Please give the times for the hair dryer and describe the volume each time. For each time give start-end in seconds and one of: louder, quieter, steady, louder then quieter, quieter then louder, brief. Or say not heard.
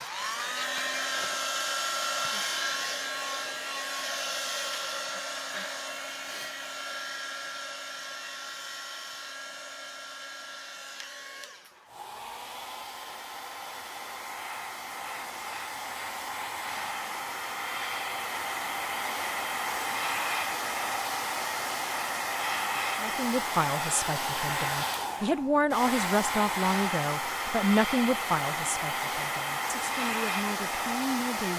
0.0-31.5 quieter then louder.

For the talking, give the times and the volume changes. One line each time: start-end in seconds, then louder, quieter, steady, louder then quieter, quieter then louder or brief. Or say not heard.
23.0-31.5 louder then quieter.